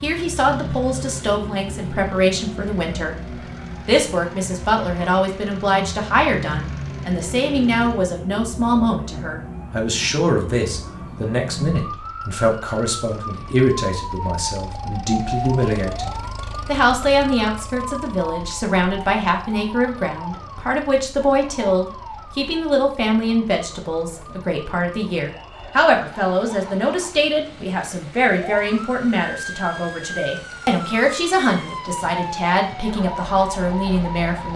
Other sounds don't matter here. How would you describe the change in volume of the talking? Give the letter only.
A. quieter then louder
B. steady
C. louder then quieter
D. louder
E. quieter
B.